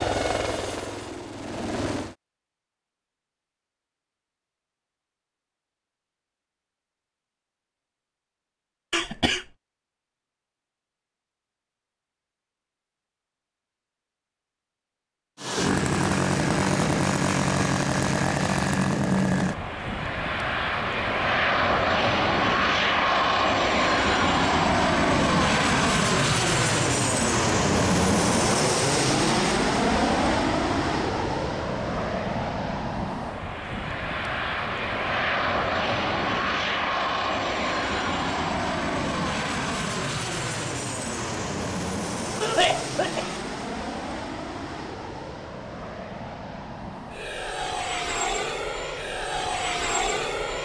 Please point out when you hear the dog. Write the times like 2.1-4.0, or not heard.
not heard.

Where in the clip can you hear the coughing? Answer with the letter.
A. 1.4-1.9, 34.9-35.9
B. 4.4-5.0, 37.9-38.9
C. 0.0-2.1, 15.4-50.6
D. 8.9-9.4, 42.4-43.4
D.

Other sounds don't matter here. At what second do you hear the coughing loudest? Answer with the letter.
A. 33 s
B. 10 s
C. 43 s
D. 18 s
C.